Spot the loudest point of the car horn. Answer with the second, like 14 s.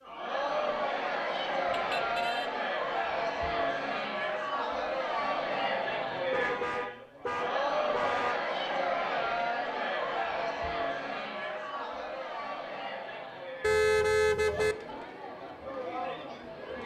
14 s.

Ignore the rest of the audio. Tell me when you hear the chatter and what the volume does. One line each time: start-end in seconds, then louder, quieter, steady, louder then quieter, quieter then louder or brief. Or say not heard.
0.0-16.8 quieter.